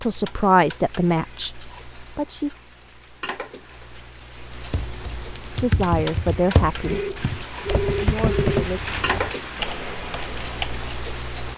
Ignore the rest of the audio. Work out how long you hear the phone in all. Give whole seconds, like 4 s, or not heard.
2 s.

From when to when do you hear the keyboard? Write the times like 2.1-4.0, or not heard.
4.7-10.9.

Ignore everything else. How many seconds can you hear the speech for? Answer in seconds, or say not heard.
5 s.